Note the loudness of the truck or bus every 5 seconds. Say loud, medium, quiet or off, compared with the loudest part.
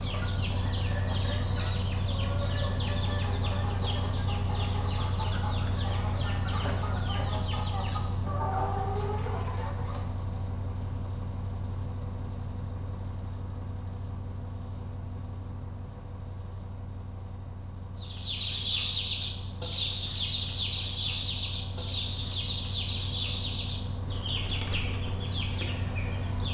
loud, loud, medium, medium, medium, loud.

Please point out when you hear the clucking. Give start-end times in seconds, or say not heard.
0.0-10.1, 18.0-26.4.